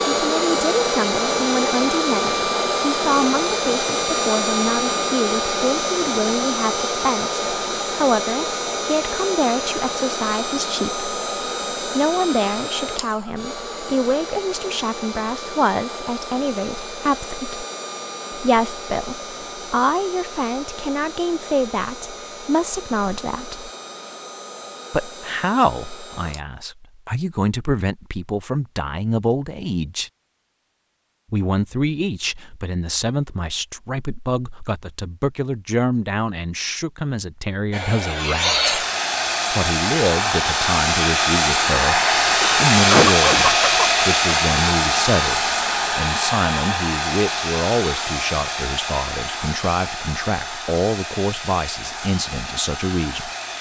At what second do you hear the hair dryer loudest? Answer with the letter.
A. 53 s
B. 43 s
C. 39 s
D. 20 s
B.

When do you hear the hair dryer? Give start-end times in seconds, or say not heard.
0.0-26.4, 37.7-53.5.